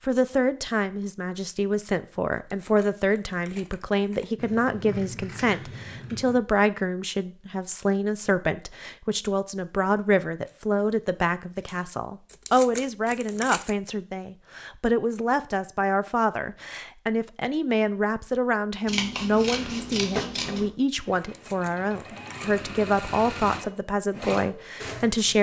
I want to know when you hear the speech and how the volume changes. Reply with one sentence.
The speech can be heard from 0.1 to 25.3 s, at a steady volume.